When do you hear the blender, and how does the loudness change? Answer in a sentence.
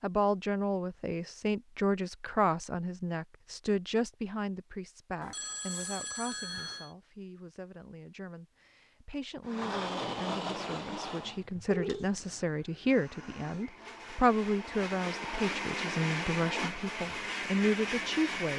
You can hear the blender from 9.4 to 18.5 s, getting quieter then louder.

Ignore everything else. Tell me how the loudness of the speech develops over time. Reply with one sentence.
The loudness of the speech goes down, then up.